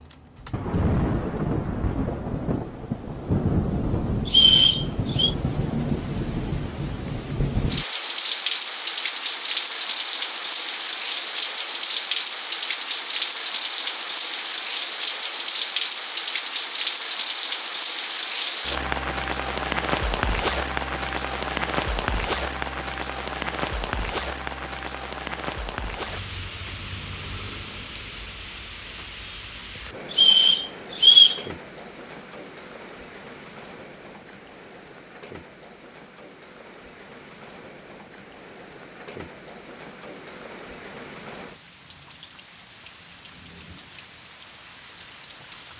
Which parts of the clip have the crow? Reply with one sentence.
The crow can't be heard in this clip.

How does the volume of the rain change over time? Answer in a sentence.
The loudness of the rain goes down.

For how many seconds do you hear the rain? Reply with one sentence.
The rain can be heard for 46 seconds in total.